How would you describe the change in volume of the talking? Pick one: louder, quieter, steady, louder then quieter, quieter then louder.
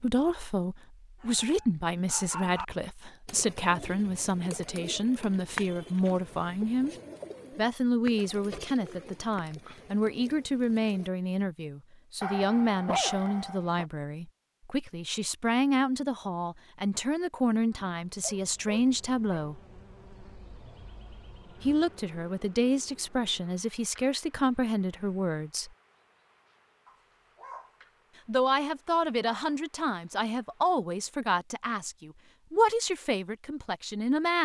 steady.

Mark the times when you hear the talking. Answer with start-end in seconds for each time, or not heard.
0.0-7.0, 7.5-19.6, 21.6-25.7, 28.2-34.4.